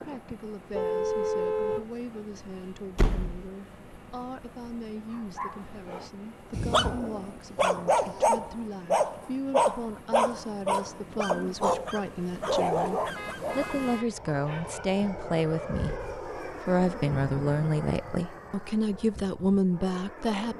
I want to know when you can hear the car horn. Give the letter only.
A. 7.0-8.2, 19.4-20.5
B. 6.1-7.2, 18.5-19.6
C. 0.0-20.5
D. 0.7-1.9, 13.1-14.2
D.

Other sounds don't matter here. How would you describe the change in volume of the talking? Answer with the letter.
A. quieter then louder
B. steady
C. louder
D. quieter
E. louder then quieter
C.